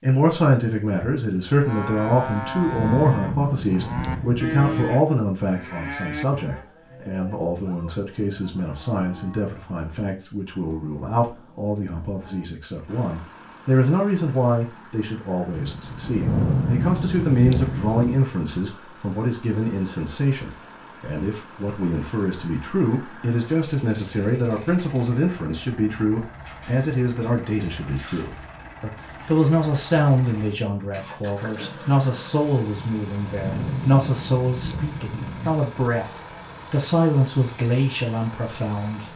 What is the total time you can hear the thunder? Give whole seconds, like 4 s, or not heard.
8 s.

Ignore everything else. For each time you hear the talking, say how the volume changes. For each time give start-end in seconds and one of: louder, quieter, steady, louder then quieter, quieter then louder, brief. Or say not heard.
0.0-39.1 steady.